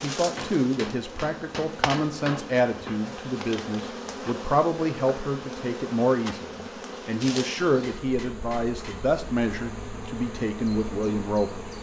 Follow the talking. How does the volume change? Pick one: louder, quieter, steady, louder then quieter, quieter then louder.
steady.